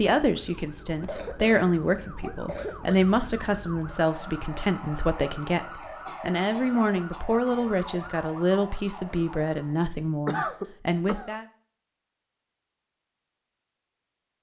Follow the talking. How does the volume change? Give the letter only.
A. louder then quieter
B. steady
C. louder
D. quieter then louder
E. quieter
B.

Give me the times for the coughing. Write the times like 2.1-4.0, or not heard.
0.9-3.0, 6.0-7.4, 10.2-11.3.